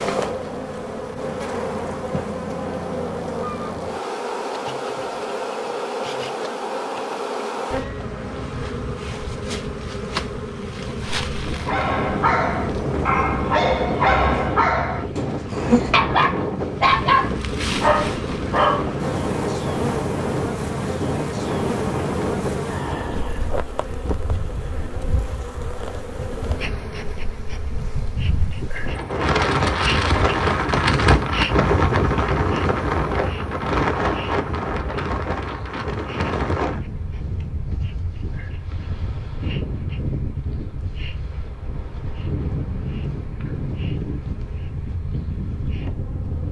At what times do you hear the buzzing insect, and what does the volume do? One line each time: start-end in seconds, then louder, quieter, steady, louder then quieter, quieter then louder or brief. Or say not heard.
0.0-46.4 quieter.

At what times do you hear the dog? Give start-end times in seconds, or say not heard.
11.5-18.9.